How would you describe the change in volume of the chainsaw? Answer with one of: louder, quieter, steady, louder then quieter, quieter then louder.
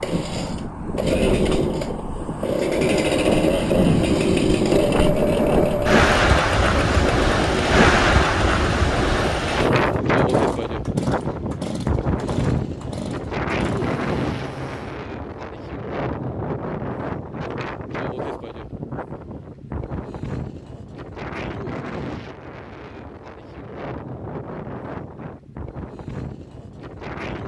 quieter.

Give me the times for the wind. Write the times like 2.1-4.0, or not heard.
0.0-27.4.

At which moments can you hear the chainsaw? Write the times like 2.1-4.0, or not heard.
0.0-15.0.